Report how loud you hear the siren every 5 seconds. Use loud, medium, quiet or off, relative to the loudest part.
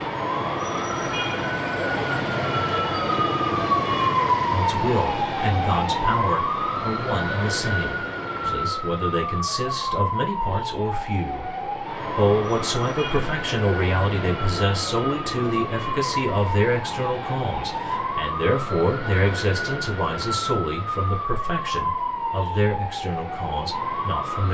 loud, loud, medium, medium, medium.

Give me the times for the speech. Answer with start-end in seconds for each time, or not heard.
4.5-24.4.